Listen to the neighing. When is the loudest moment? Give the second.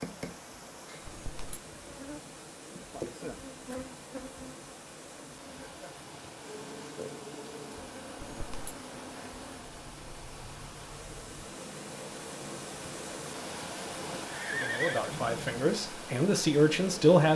15 s.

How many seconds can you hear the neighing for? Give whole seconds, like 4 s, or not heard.
3 s.